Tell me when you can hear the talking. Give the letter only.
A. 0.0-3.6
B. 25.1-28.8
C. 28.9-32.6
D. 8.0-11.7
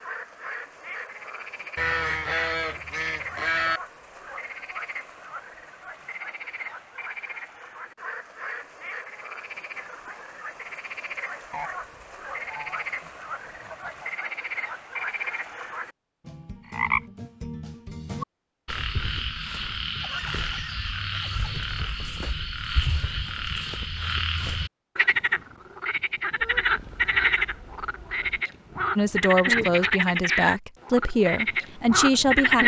C.